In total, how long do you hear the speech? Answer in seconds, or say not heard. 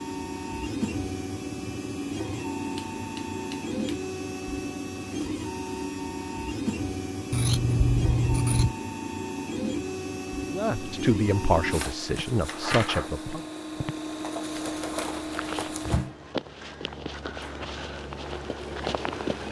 3 s.